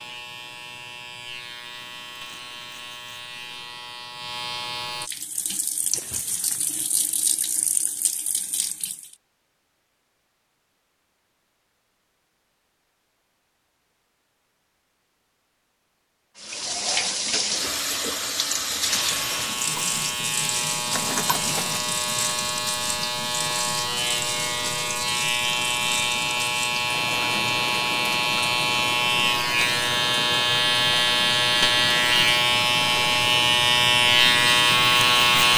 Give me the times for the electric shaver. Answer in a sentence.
You can hear the electric shaver from 0.0 to 5.1 s and from 18.9 to 35.5 s.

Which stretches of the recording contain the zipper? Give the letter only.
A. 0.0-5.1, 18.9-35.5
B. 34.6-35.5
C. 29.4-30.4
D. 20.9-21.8
D.